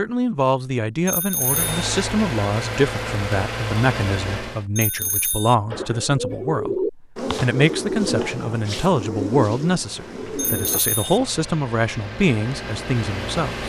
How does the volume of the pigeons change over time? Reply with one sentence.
The volume of the pigeons goes down.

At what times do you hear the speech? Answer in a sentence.
The speech can be heard from 0.0 to 13.6 s.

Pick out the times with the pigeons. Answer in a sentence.
You can hear the pigeons from 5.7 to 10.8 s.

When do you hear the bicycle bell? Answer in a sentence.
You can hear the bicycle bell from 1.1 to 1.9 s, from 4.8 to 5.5 s and from 10.3 to 11.2 s.